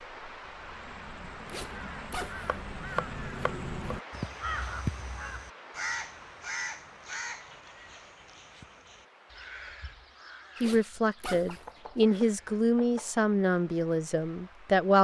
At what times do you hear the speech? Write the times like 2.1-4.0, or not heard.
10.6-14.9.